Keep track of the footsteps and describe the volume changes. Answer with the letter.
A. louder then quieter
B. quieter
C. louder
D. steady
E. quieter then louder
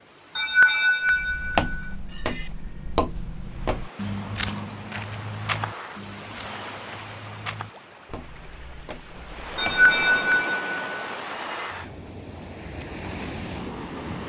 B.